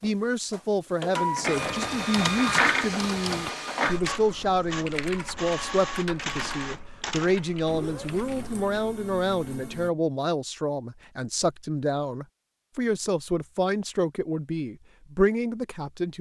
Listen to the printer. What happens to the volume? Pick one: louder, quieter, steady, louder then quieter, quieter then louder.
quieter.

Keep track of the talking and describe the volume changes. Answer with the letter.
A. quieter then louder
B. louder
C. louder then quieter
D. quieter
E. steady
E.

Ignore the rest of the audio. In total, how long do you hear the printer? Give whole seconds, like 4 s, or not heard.
10 s.